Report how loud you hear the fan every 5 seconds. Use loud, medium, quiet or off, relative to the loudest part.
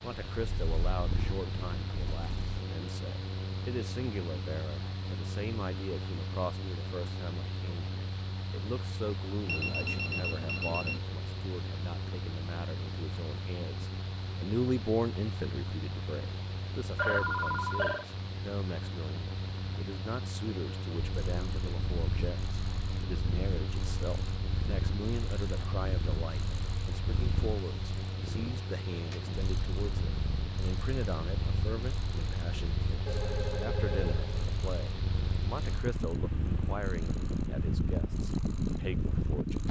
medium, medium, medium, medium, medium, medium, medium, loud.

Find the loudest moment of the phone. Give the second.
17 s.